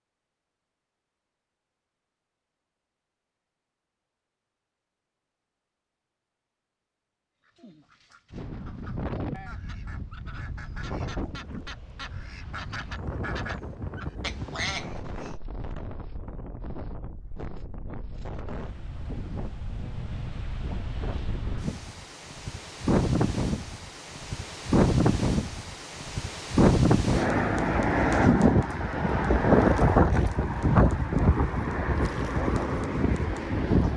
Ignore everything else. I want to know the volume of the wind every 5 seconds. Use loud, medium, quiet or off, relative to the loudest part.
off, quiet, quiet, quiet, medium, loud, loud.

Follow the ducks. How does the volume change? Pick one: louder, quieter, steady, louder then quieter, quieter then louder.
louder.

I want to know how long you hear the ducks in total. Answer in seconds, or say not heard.
8 s.